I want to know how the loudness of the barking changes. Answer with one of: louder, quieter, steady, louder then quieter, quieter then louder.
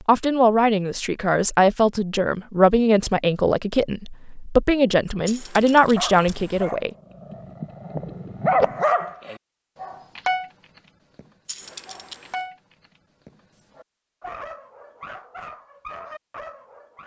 louder then quieter.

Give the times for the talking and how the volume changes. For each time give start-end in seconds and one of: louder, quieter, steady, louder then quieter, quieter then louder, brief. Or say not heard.
0.1-6.9 steady.